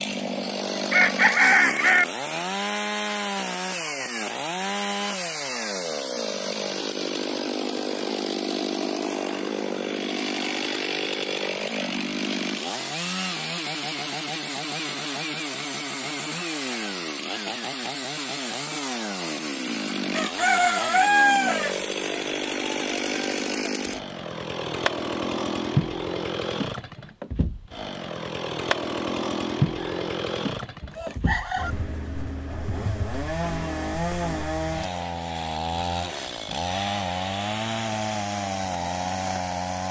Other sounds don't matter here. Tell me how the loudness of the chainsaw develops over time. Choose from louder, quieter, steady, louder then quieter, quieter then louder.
steady.